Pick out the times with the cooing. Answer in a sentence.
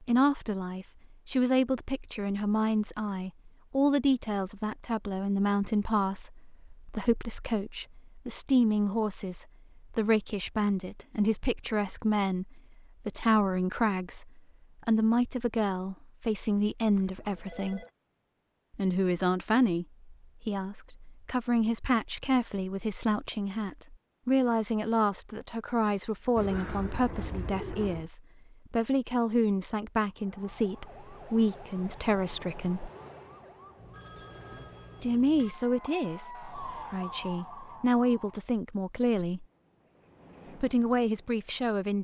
The cooing can be heard from 26.4 to 28.1 s.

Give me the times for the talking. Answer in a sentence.
The talking can be heard from 0.0 to 17.9 s, from 18.8 to 32.9 s, from 35.0 to 39.5 s and from 40.5 to 41.9 s.